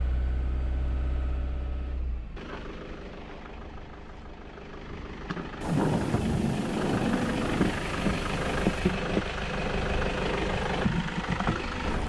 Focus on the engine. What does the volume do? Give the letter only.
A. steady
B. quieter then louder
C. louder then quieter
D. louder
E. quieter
D.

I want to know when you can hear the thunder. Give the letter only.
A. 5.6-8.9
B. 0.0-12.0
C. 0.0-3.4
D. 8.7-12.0
A.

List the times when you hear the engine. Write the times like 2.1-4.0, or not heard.
0.0-12.0.